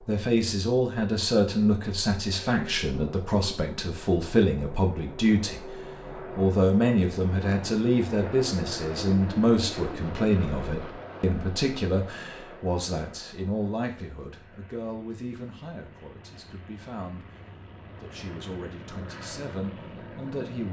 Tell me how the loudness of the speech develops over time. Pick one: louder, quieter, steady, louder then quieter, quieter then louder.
quieter.